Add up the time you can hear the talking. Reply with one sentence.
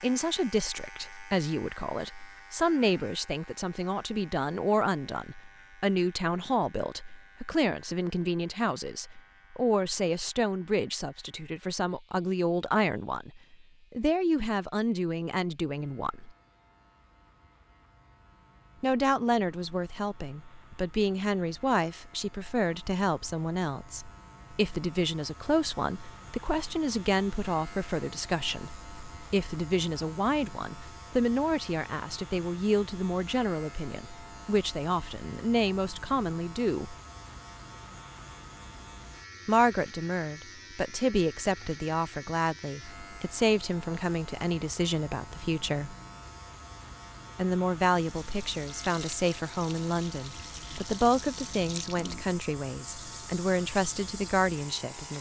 The talking can be heard for 49 seconds in total.